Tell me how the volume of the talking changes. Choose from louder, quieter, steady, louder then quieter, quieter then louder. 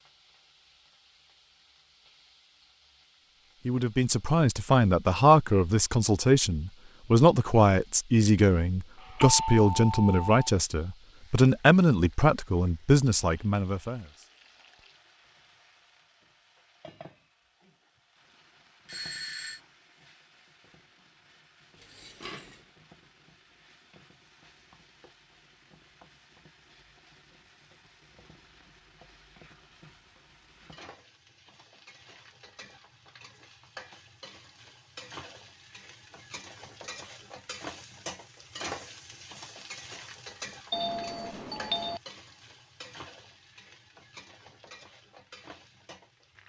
steady.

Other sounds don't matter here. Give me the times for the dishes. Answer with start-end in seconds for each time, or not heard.
21.8-22.7.